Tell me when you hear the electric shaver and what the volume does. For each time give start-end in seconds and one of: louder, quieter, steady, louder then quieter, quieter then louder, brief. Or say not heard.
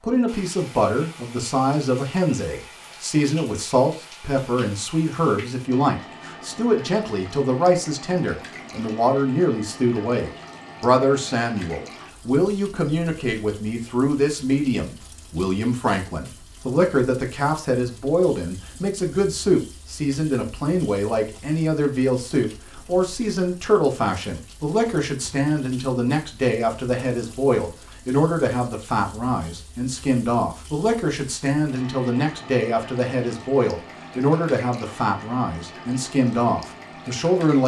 not heard.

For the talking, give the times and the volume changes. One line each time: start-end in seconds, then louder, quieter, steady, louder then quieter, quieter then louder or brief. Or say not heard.
0.0-37.6 steady.